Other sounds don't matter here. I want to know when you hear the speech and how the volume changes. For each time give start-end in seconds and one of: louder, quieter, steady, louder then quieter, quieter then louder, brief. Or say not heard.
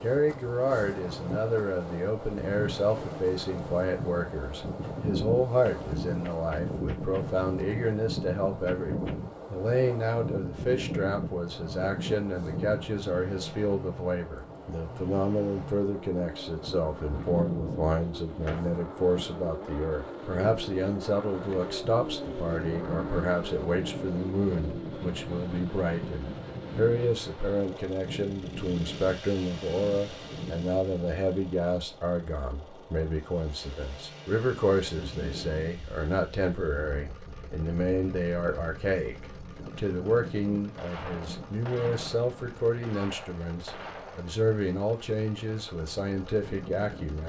0.0-47.2 steady.